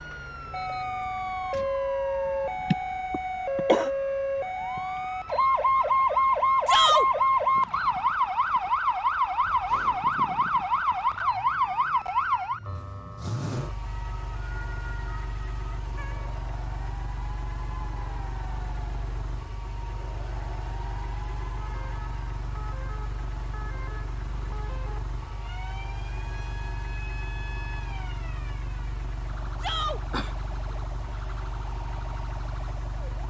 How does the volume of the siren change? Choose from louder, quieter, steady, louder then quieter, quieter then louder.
quieter.